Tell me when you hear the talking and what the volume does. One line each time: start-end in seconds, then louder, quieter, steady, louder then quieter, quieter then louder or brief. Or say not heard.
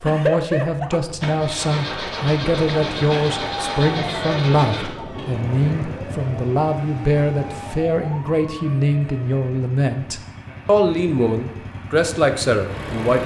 0.0-13.2 steady.